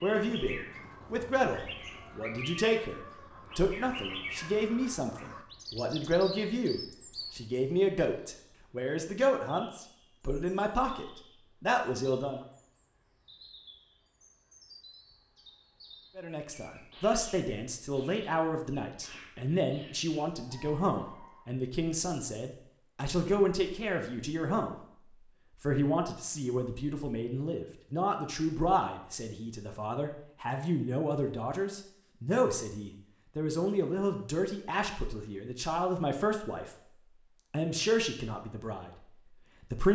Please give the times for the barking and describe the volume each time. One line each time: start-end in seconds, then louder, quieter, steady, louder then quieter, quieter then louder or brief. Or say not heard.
not heard.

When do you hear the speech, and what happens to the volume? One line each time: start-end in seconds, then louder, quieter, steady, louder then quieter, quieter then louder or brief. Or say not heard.
0.0-12.4 steady
16.1-36.7 steady
37.5-39.9 brief.